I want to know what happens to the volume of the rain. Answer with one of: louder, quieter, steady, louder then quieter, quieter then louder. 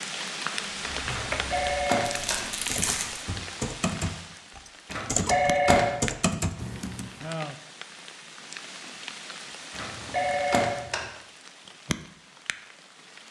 quieter.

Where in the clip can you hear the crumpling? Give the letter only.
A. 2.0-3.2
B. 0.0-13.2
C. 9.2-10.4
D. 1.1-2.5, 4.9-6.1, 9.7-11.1
A.